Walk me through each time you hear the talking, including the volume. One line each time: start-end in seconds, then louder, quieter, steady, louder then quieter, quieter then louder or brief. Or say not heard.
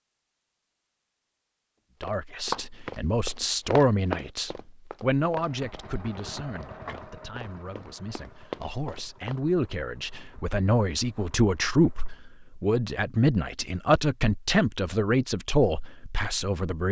2.0-16.8 quieter then louder.